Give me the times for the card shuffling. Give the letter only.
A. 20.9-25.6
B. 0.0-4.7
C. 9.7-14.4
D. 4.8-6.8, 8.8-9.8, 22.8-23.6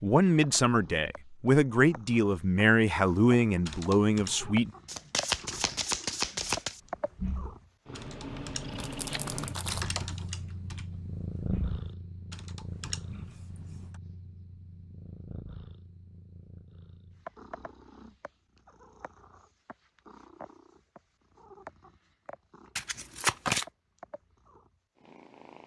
D.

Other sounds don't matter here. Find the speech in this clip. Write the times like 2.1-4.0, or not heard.
0.0-4.7.